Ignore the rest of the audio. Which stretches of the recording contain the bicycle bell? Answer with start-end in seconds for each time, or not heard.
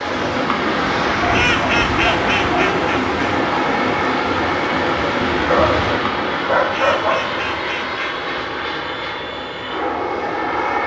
not heard.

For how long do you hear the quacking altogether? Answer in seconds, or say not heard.
4 s.